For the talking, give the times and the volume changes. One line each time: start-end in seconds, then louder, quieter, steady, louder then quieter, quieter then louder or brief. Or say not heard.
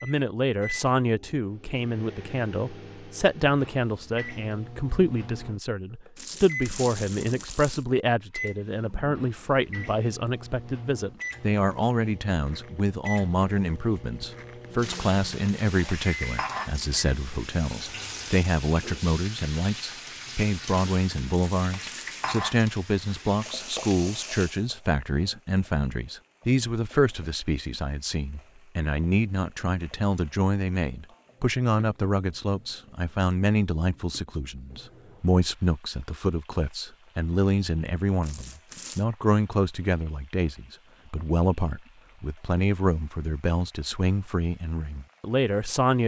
0.0-46.0 steady.